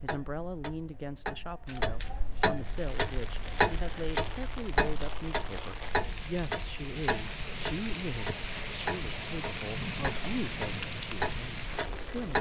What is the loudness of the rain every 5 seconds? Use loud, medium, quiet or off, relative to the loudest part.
medium, loud, loud.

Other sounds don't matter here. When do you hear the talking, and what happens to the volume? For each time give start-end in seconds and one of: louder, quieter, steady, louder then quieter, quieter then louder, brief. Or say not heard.
0.0-12.3 steady.